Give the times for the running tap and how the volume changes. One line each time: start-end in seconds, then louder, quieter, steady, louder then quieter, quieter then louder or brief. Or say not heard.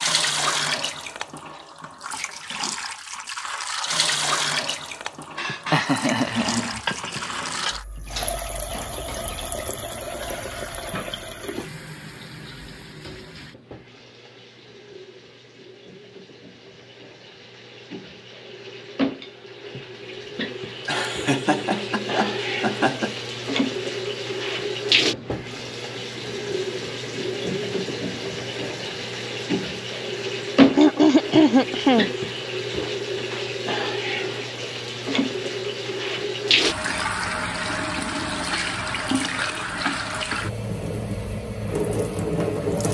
0.0-42.8 quieter then louder.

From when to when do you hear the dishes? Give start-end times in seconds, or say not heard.
5.3-11.7.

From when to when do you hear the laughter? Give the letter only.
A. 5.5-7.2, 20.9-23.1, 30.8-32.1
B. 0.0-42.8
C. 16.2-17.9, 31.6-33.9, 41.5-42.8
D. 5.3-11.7
A.